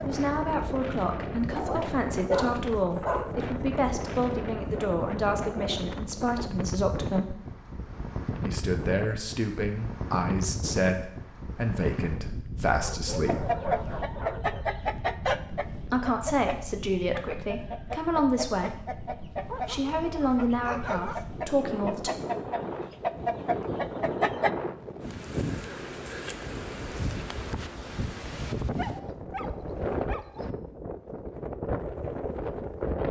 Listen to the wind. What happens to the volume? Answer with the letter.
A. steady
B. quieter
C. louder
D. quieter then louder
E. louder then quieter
D.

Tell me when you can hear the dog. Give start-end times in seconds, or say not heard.
1.6-3.4, 12.8-14.7, 19.4-21.2, 28.6-30.5.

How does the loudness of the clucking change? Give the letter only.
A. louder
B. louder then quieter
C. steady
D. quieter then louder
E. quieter
D.